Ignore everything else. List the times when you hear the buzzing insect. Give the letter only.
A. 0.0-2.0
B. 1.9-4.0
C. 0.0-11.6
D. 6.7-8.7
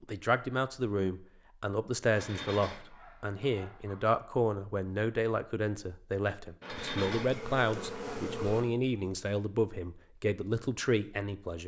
D.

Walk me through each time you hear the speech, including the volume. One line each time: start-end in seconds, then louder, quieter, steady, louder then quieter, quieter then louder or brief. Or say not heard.
0.0-11.6 steady.